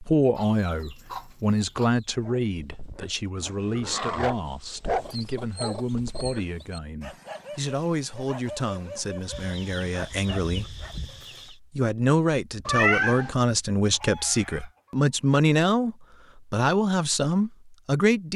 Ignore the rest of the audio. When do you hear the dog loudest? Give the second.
5 s.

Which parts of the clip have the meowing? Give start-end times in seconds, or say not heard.
12.7-13.3.